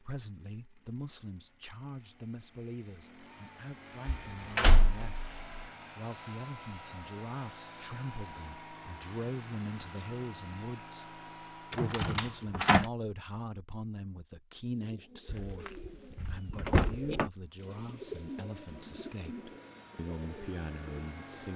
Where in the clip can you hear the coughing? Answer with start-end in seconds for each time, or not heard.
not heard.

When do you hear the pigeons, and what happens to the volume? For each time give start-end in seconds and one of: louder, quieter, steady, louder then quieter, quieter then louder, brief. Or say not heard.
14.7-21.5 louder then quieter.